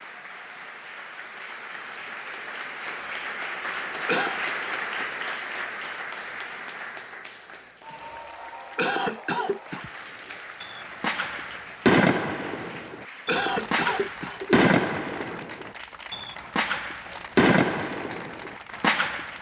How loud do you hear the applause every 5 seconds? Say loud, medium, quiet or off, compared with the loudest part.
loud, loud, medium, medium.